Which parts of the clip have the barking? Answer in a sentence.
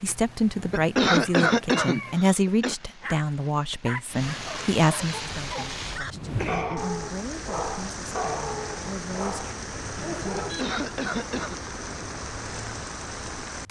The barking can be heard from 3.0 to 10.6 s.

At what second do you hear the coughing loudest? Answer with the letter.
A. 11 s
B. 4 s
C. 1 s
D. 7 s
C.